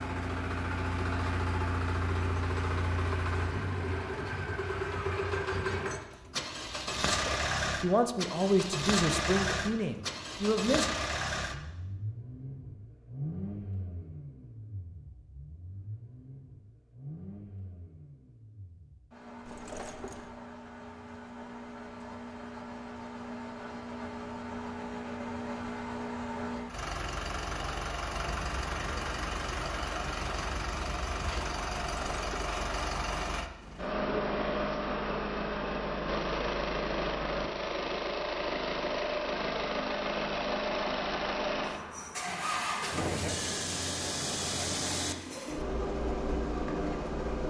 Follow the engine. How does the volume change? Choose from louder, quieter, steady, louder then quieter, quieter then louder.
quieter then louder.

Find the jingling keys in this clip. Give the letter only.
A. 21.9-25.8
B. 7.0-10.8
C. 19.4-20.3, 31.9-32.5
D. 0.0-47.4
C.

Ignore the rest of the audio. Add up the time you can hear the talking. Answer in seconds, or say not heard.
4 s.